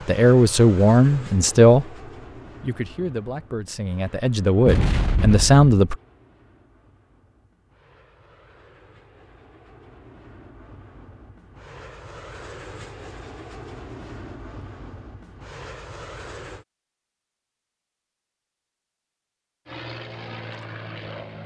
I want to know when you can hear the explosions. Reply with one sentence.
You can hear the explosions from 4.7 to 5.7 s.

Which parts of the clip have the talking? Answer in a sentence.
You can hear the talking from 0.1 to 1.9 s and from 2.6 to 6.0 s.